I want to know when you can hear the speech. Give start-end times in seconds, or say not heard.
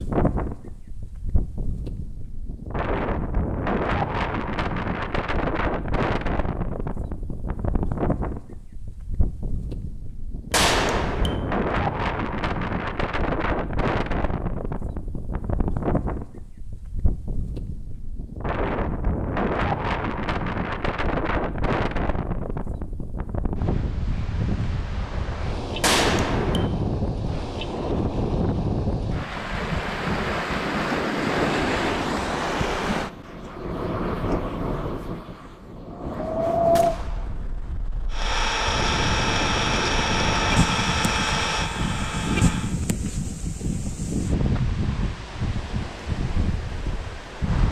not heard.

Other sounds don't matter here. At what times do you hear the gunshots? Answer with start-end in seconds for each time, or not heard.
10.5-11.4, 25.8-26.7, 36.8-37.4.